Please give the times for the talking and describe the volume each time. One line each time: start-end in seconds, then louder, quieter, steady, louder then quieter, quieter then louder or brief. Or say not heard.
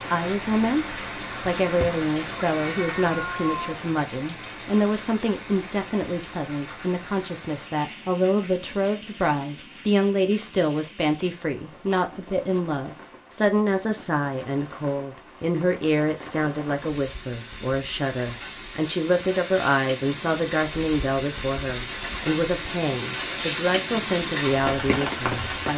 0.0-25.7 steady.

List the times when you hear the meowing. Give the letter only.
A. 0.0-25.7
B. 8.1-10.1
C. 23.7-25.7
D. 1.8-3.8
D.